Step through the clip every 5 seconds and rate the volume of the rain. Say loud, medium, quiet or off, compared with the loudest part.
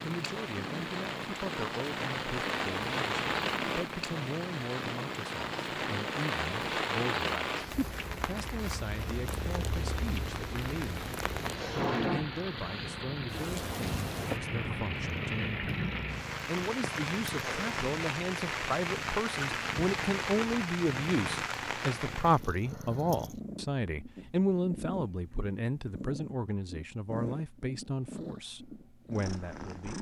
loud, loud, loud, loud, loud, off.